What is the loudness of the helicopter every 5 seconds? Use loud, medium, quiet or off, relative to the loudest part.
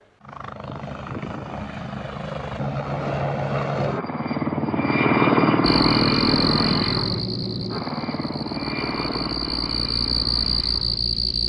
medium, loud, quiet.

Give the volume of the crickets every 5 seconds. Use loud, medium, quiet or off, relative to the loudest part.
off, medium, loud.